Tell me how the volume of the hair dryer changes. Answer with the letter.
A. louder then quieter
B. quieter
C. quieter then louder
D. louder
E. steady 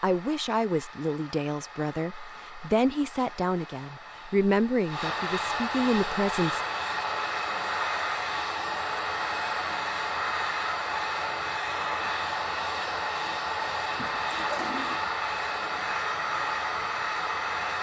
D.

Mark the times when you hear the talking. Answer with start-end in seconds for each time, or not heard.
0.0-6.6.